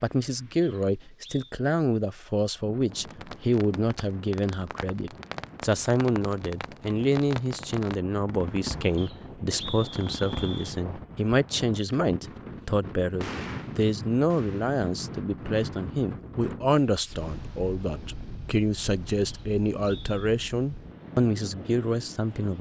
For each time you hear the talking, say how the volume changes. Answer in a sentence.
You can hear the talking from 0.0 to 22.5 s, at a steady volume.